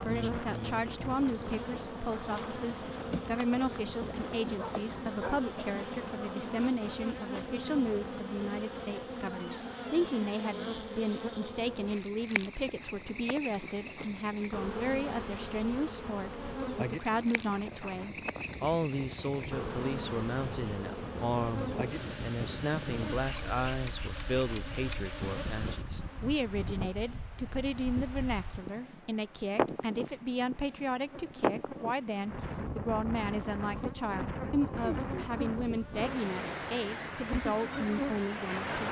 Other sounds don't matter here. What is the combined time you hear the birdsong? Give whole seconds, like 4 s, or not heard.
not heard.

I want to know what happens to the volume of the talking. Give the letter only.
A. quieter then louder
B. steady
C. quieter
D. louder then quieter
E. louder
B.